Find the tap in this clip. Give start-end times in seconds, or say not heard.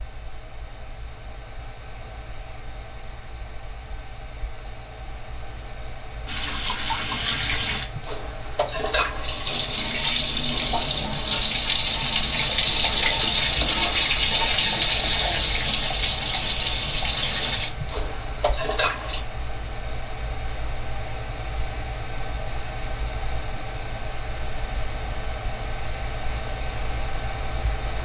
6.2-19.2.